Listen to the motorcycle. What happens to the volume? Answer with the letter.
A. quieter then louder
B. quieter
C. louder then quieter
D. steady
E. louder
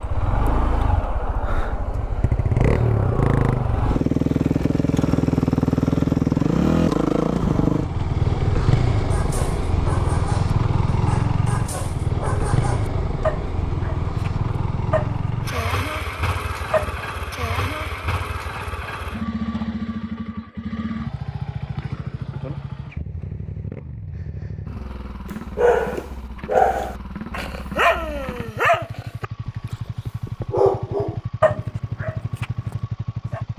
B.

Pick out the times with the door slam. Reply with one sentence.
The door slam can't be heard in this clip.